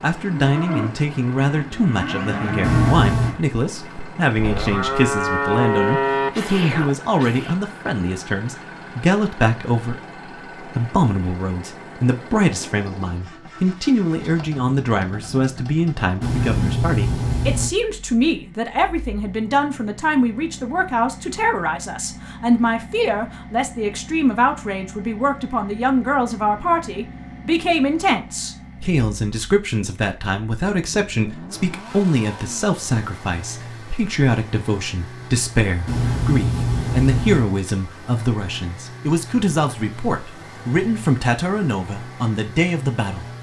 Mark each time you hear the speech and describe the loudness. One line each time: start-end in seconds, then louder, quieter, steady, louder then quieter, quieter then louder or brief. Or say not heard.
0.0-43.3 steady.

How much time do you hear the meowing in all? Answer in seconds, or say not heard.
4 s.